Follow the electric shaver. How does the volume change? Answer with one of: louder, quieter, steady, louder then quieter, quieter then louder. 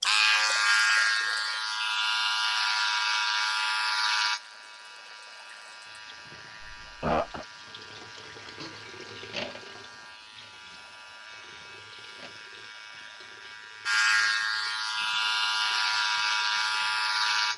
quieter then louder.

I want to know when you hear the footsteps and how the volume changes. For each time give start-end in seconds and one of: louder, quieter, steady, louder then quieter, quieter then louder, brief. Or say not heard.
not heard.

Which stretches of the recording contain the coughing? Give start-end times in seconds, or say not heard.
6.6-7.5.